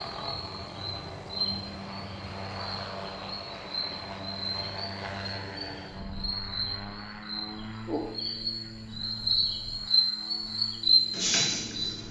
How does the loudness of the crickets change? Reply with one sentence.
The volume of the crickets goes up.